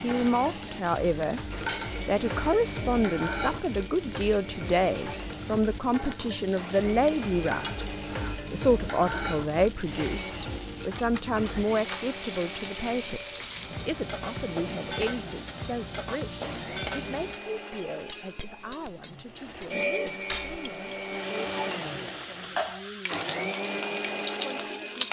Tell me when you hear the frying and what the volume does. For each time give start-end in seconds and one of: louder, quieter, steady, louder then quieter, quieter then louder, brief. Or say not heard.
0.0-25.0 steady.